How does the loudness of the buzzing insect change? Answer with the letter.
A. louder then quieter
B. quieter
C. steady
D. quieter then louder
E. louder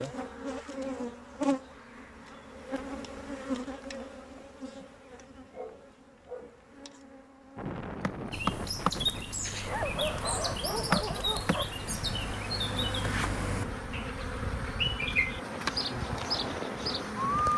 D.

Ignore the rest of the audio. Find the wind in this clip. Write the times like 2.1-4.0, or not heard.
7.5-17.5.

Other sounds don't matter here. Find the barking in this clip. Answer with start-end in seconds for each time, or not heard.
5.5-6.6, 9.7-11.7.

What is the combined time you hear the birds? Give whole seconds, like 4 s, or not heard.
9 s.